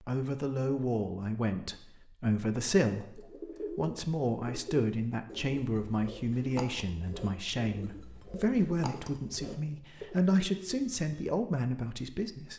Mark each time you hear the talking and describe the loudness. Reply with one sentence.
You can hear the talking from 0.1 to 12.5 s, at a steady volume.